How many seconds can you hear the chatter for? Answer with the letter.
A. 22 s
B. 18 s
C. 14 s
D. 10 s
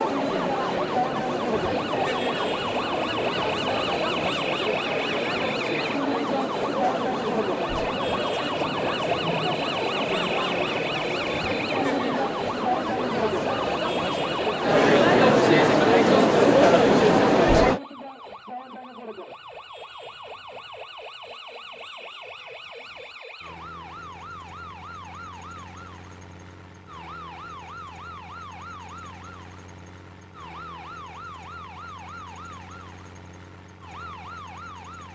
B.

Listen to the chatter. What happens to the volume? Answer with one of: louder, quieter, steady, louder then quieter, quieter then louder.
louder.